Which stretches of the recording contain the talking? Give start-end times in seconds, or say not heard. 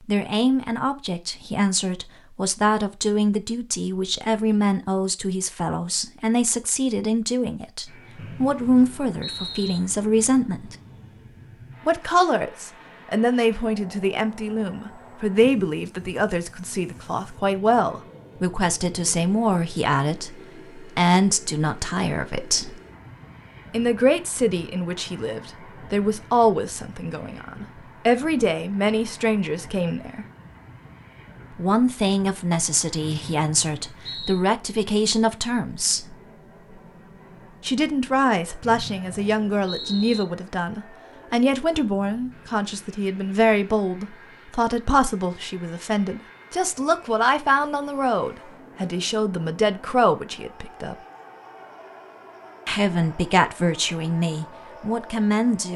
0.1-10.8, 11.8-22.8, 23.7-30.2, 31.6-36.1, 37.6-51.0, 52.6-55.7.